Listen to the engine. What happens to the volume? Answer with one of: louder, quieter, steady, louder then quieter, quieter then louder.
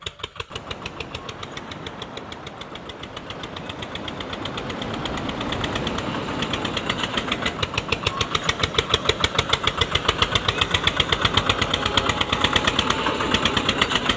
louder.